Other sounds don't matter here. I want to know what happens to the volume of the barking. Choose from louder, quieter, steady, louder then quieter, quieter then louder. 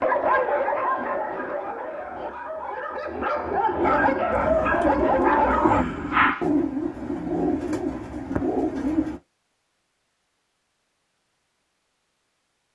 quieter then louder.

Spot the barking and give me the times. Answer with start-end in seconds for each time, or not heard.
0.0-6.5.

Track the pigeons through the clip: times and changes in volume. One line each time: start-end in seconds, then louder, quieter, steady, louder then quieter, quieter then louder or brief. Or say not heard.
3.8-9.2 steady.